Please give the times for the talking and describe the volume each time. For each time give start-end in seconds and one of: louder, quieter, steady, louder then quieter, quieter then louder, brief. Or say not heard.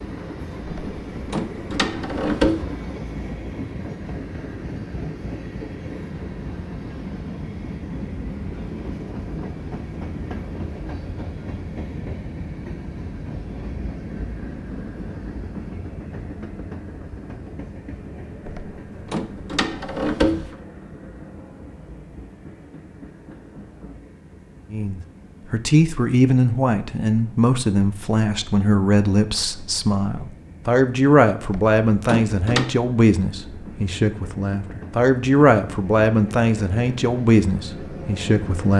24.7-38.7 steady.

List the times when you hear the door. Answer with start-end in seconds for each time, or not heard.
0.7-2.6, 18.4-20.6, 31.4-32.8.